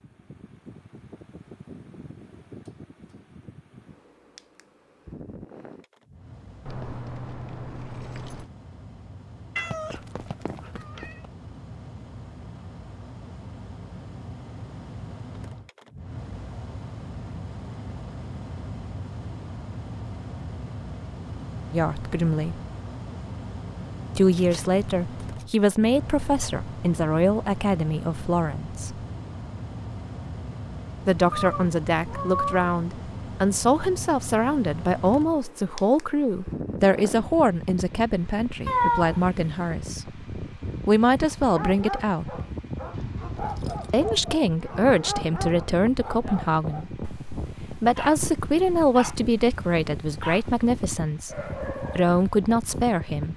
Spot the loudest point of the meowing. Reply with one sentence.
The loudest moment of the meowing is at 39 seconds.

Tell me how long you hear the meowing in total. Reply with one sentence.
You can hear the meowing for 4 seconds altogether.